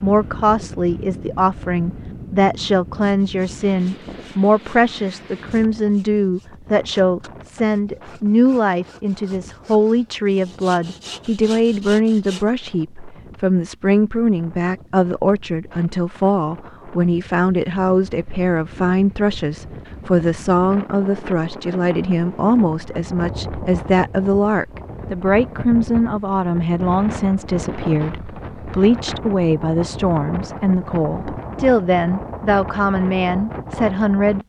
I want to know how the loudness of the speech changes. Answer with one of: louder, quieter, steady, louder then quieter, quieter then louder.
steady.